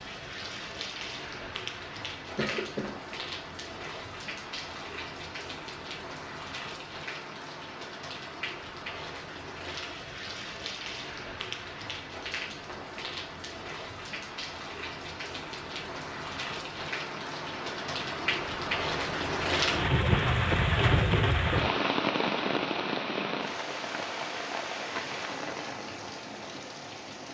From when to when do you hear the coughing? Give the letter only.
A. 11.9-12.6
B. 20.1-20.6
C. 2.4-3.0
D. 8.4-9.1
C.